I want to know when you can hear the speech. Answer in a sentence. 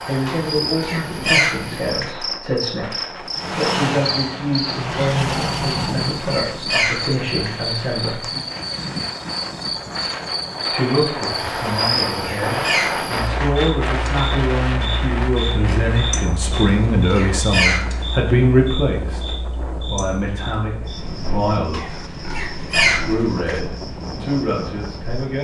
The speech can be heard from 0.1 to 8.2 s, from 10.7 to 22.1 s and from 22.9 to 25.4 s.